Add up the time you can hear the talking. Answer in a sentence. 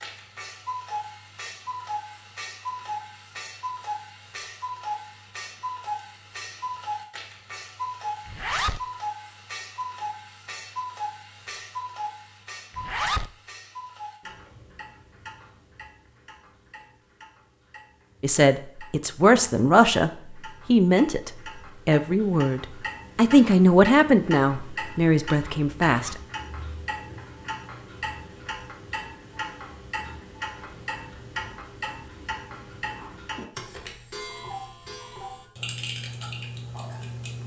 You can hear the talking for 8 seconds altogether.